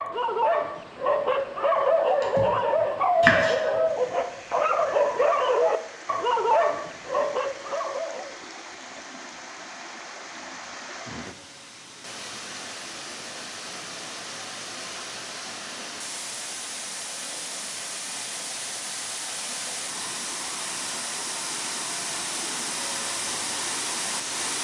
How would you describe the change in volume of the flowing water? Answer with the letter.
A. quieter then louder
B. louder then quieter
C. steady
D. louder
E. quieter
D.